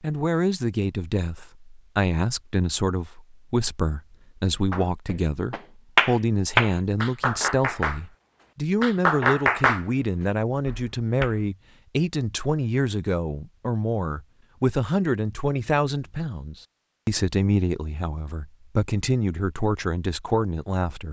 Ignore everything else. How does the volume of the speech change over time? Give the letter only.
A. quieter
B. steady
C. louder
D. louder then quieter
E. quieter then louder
B.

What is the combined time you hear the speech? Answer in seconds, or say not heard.
21 s.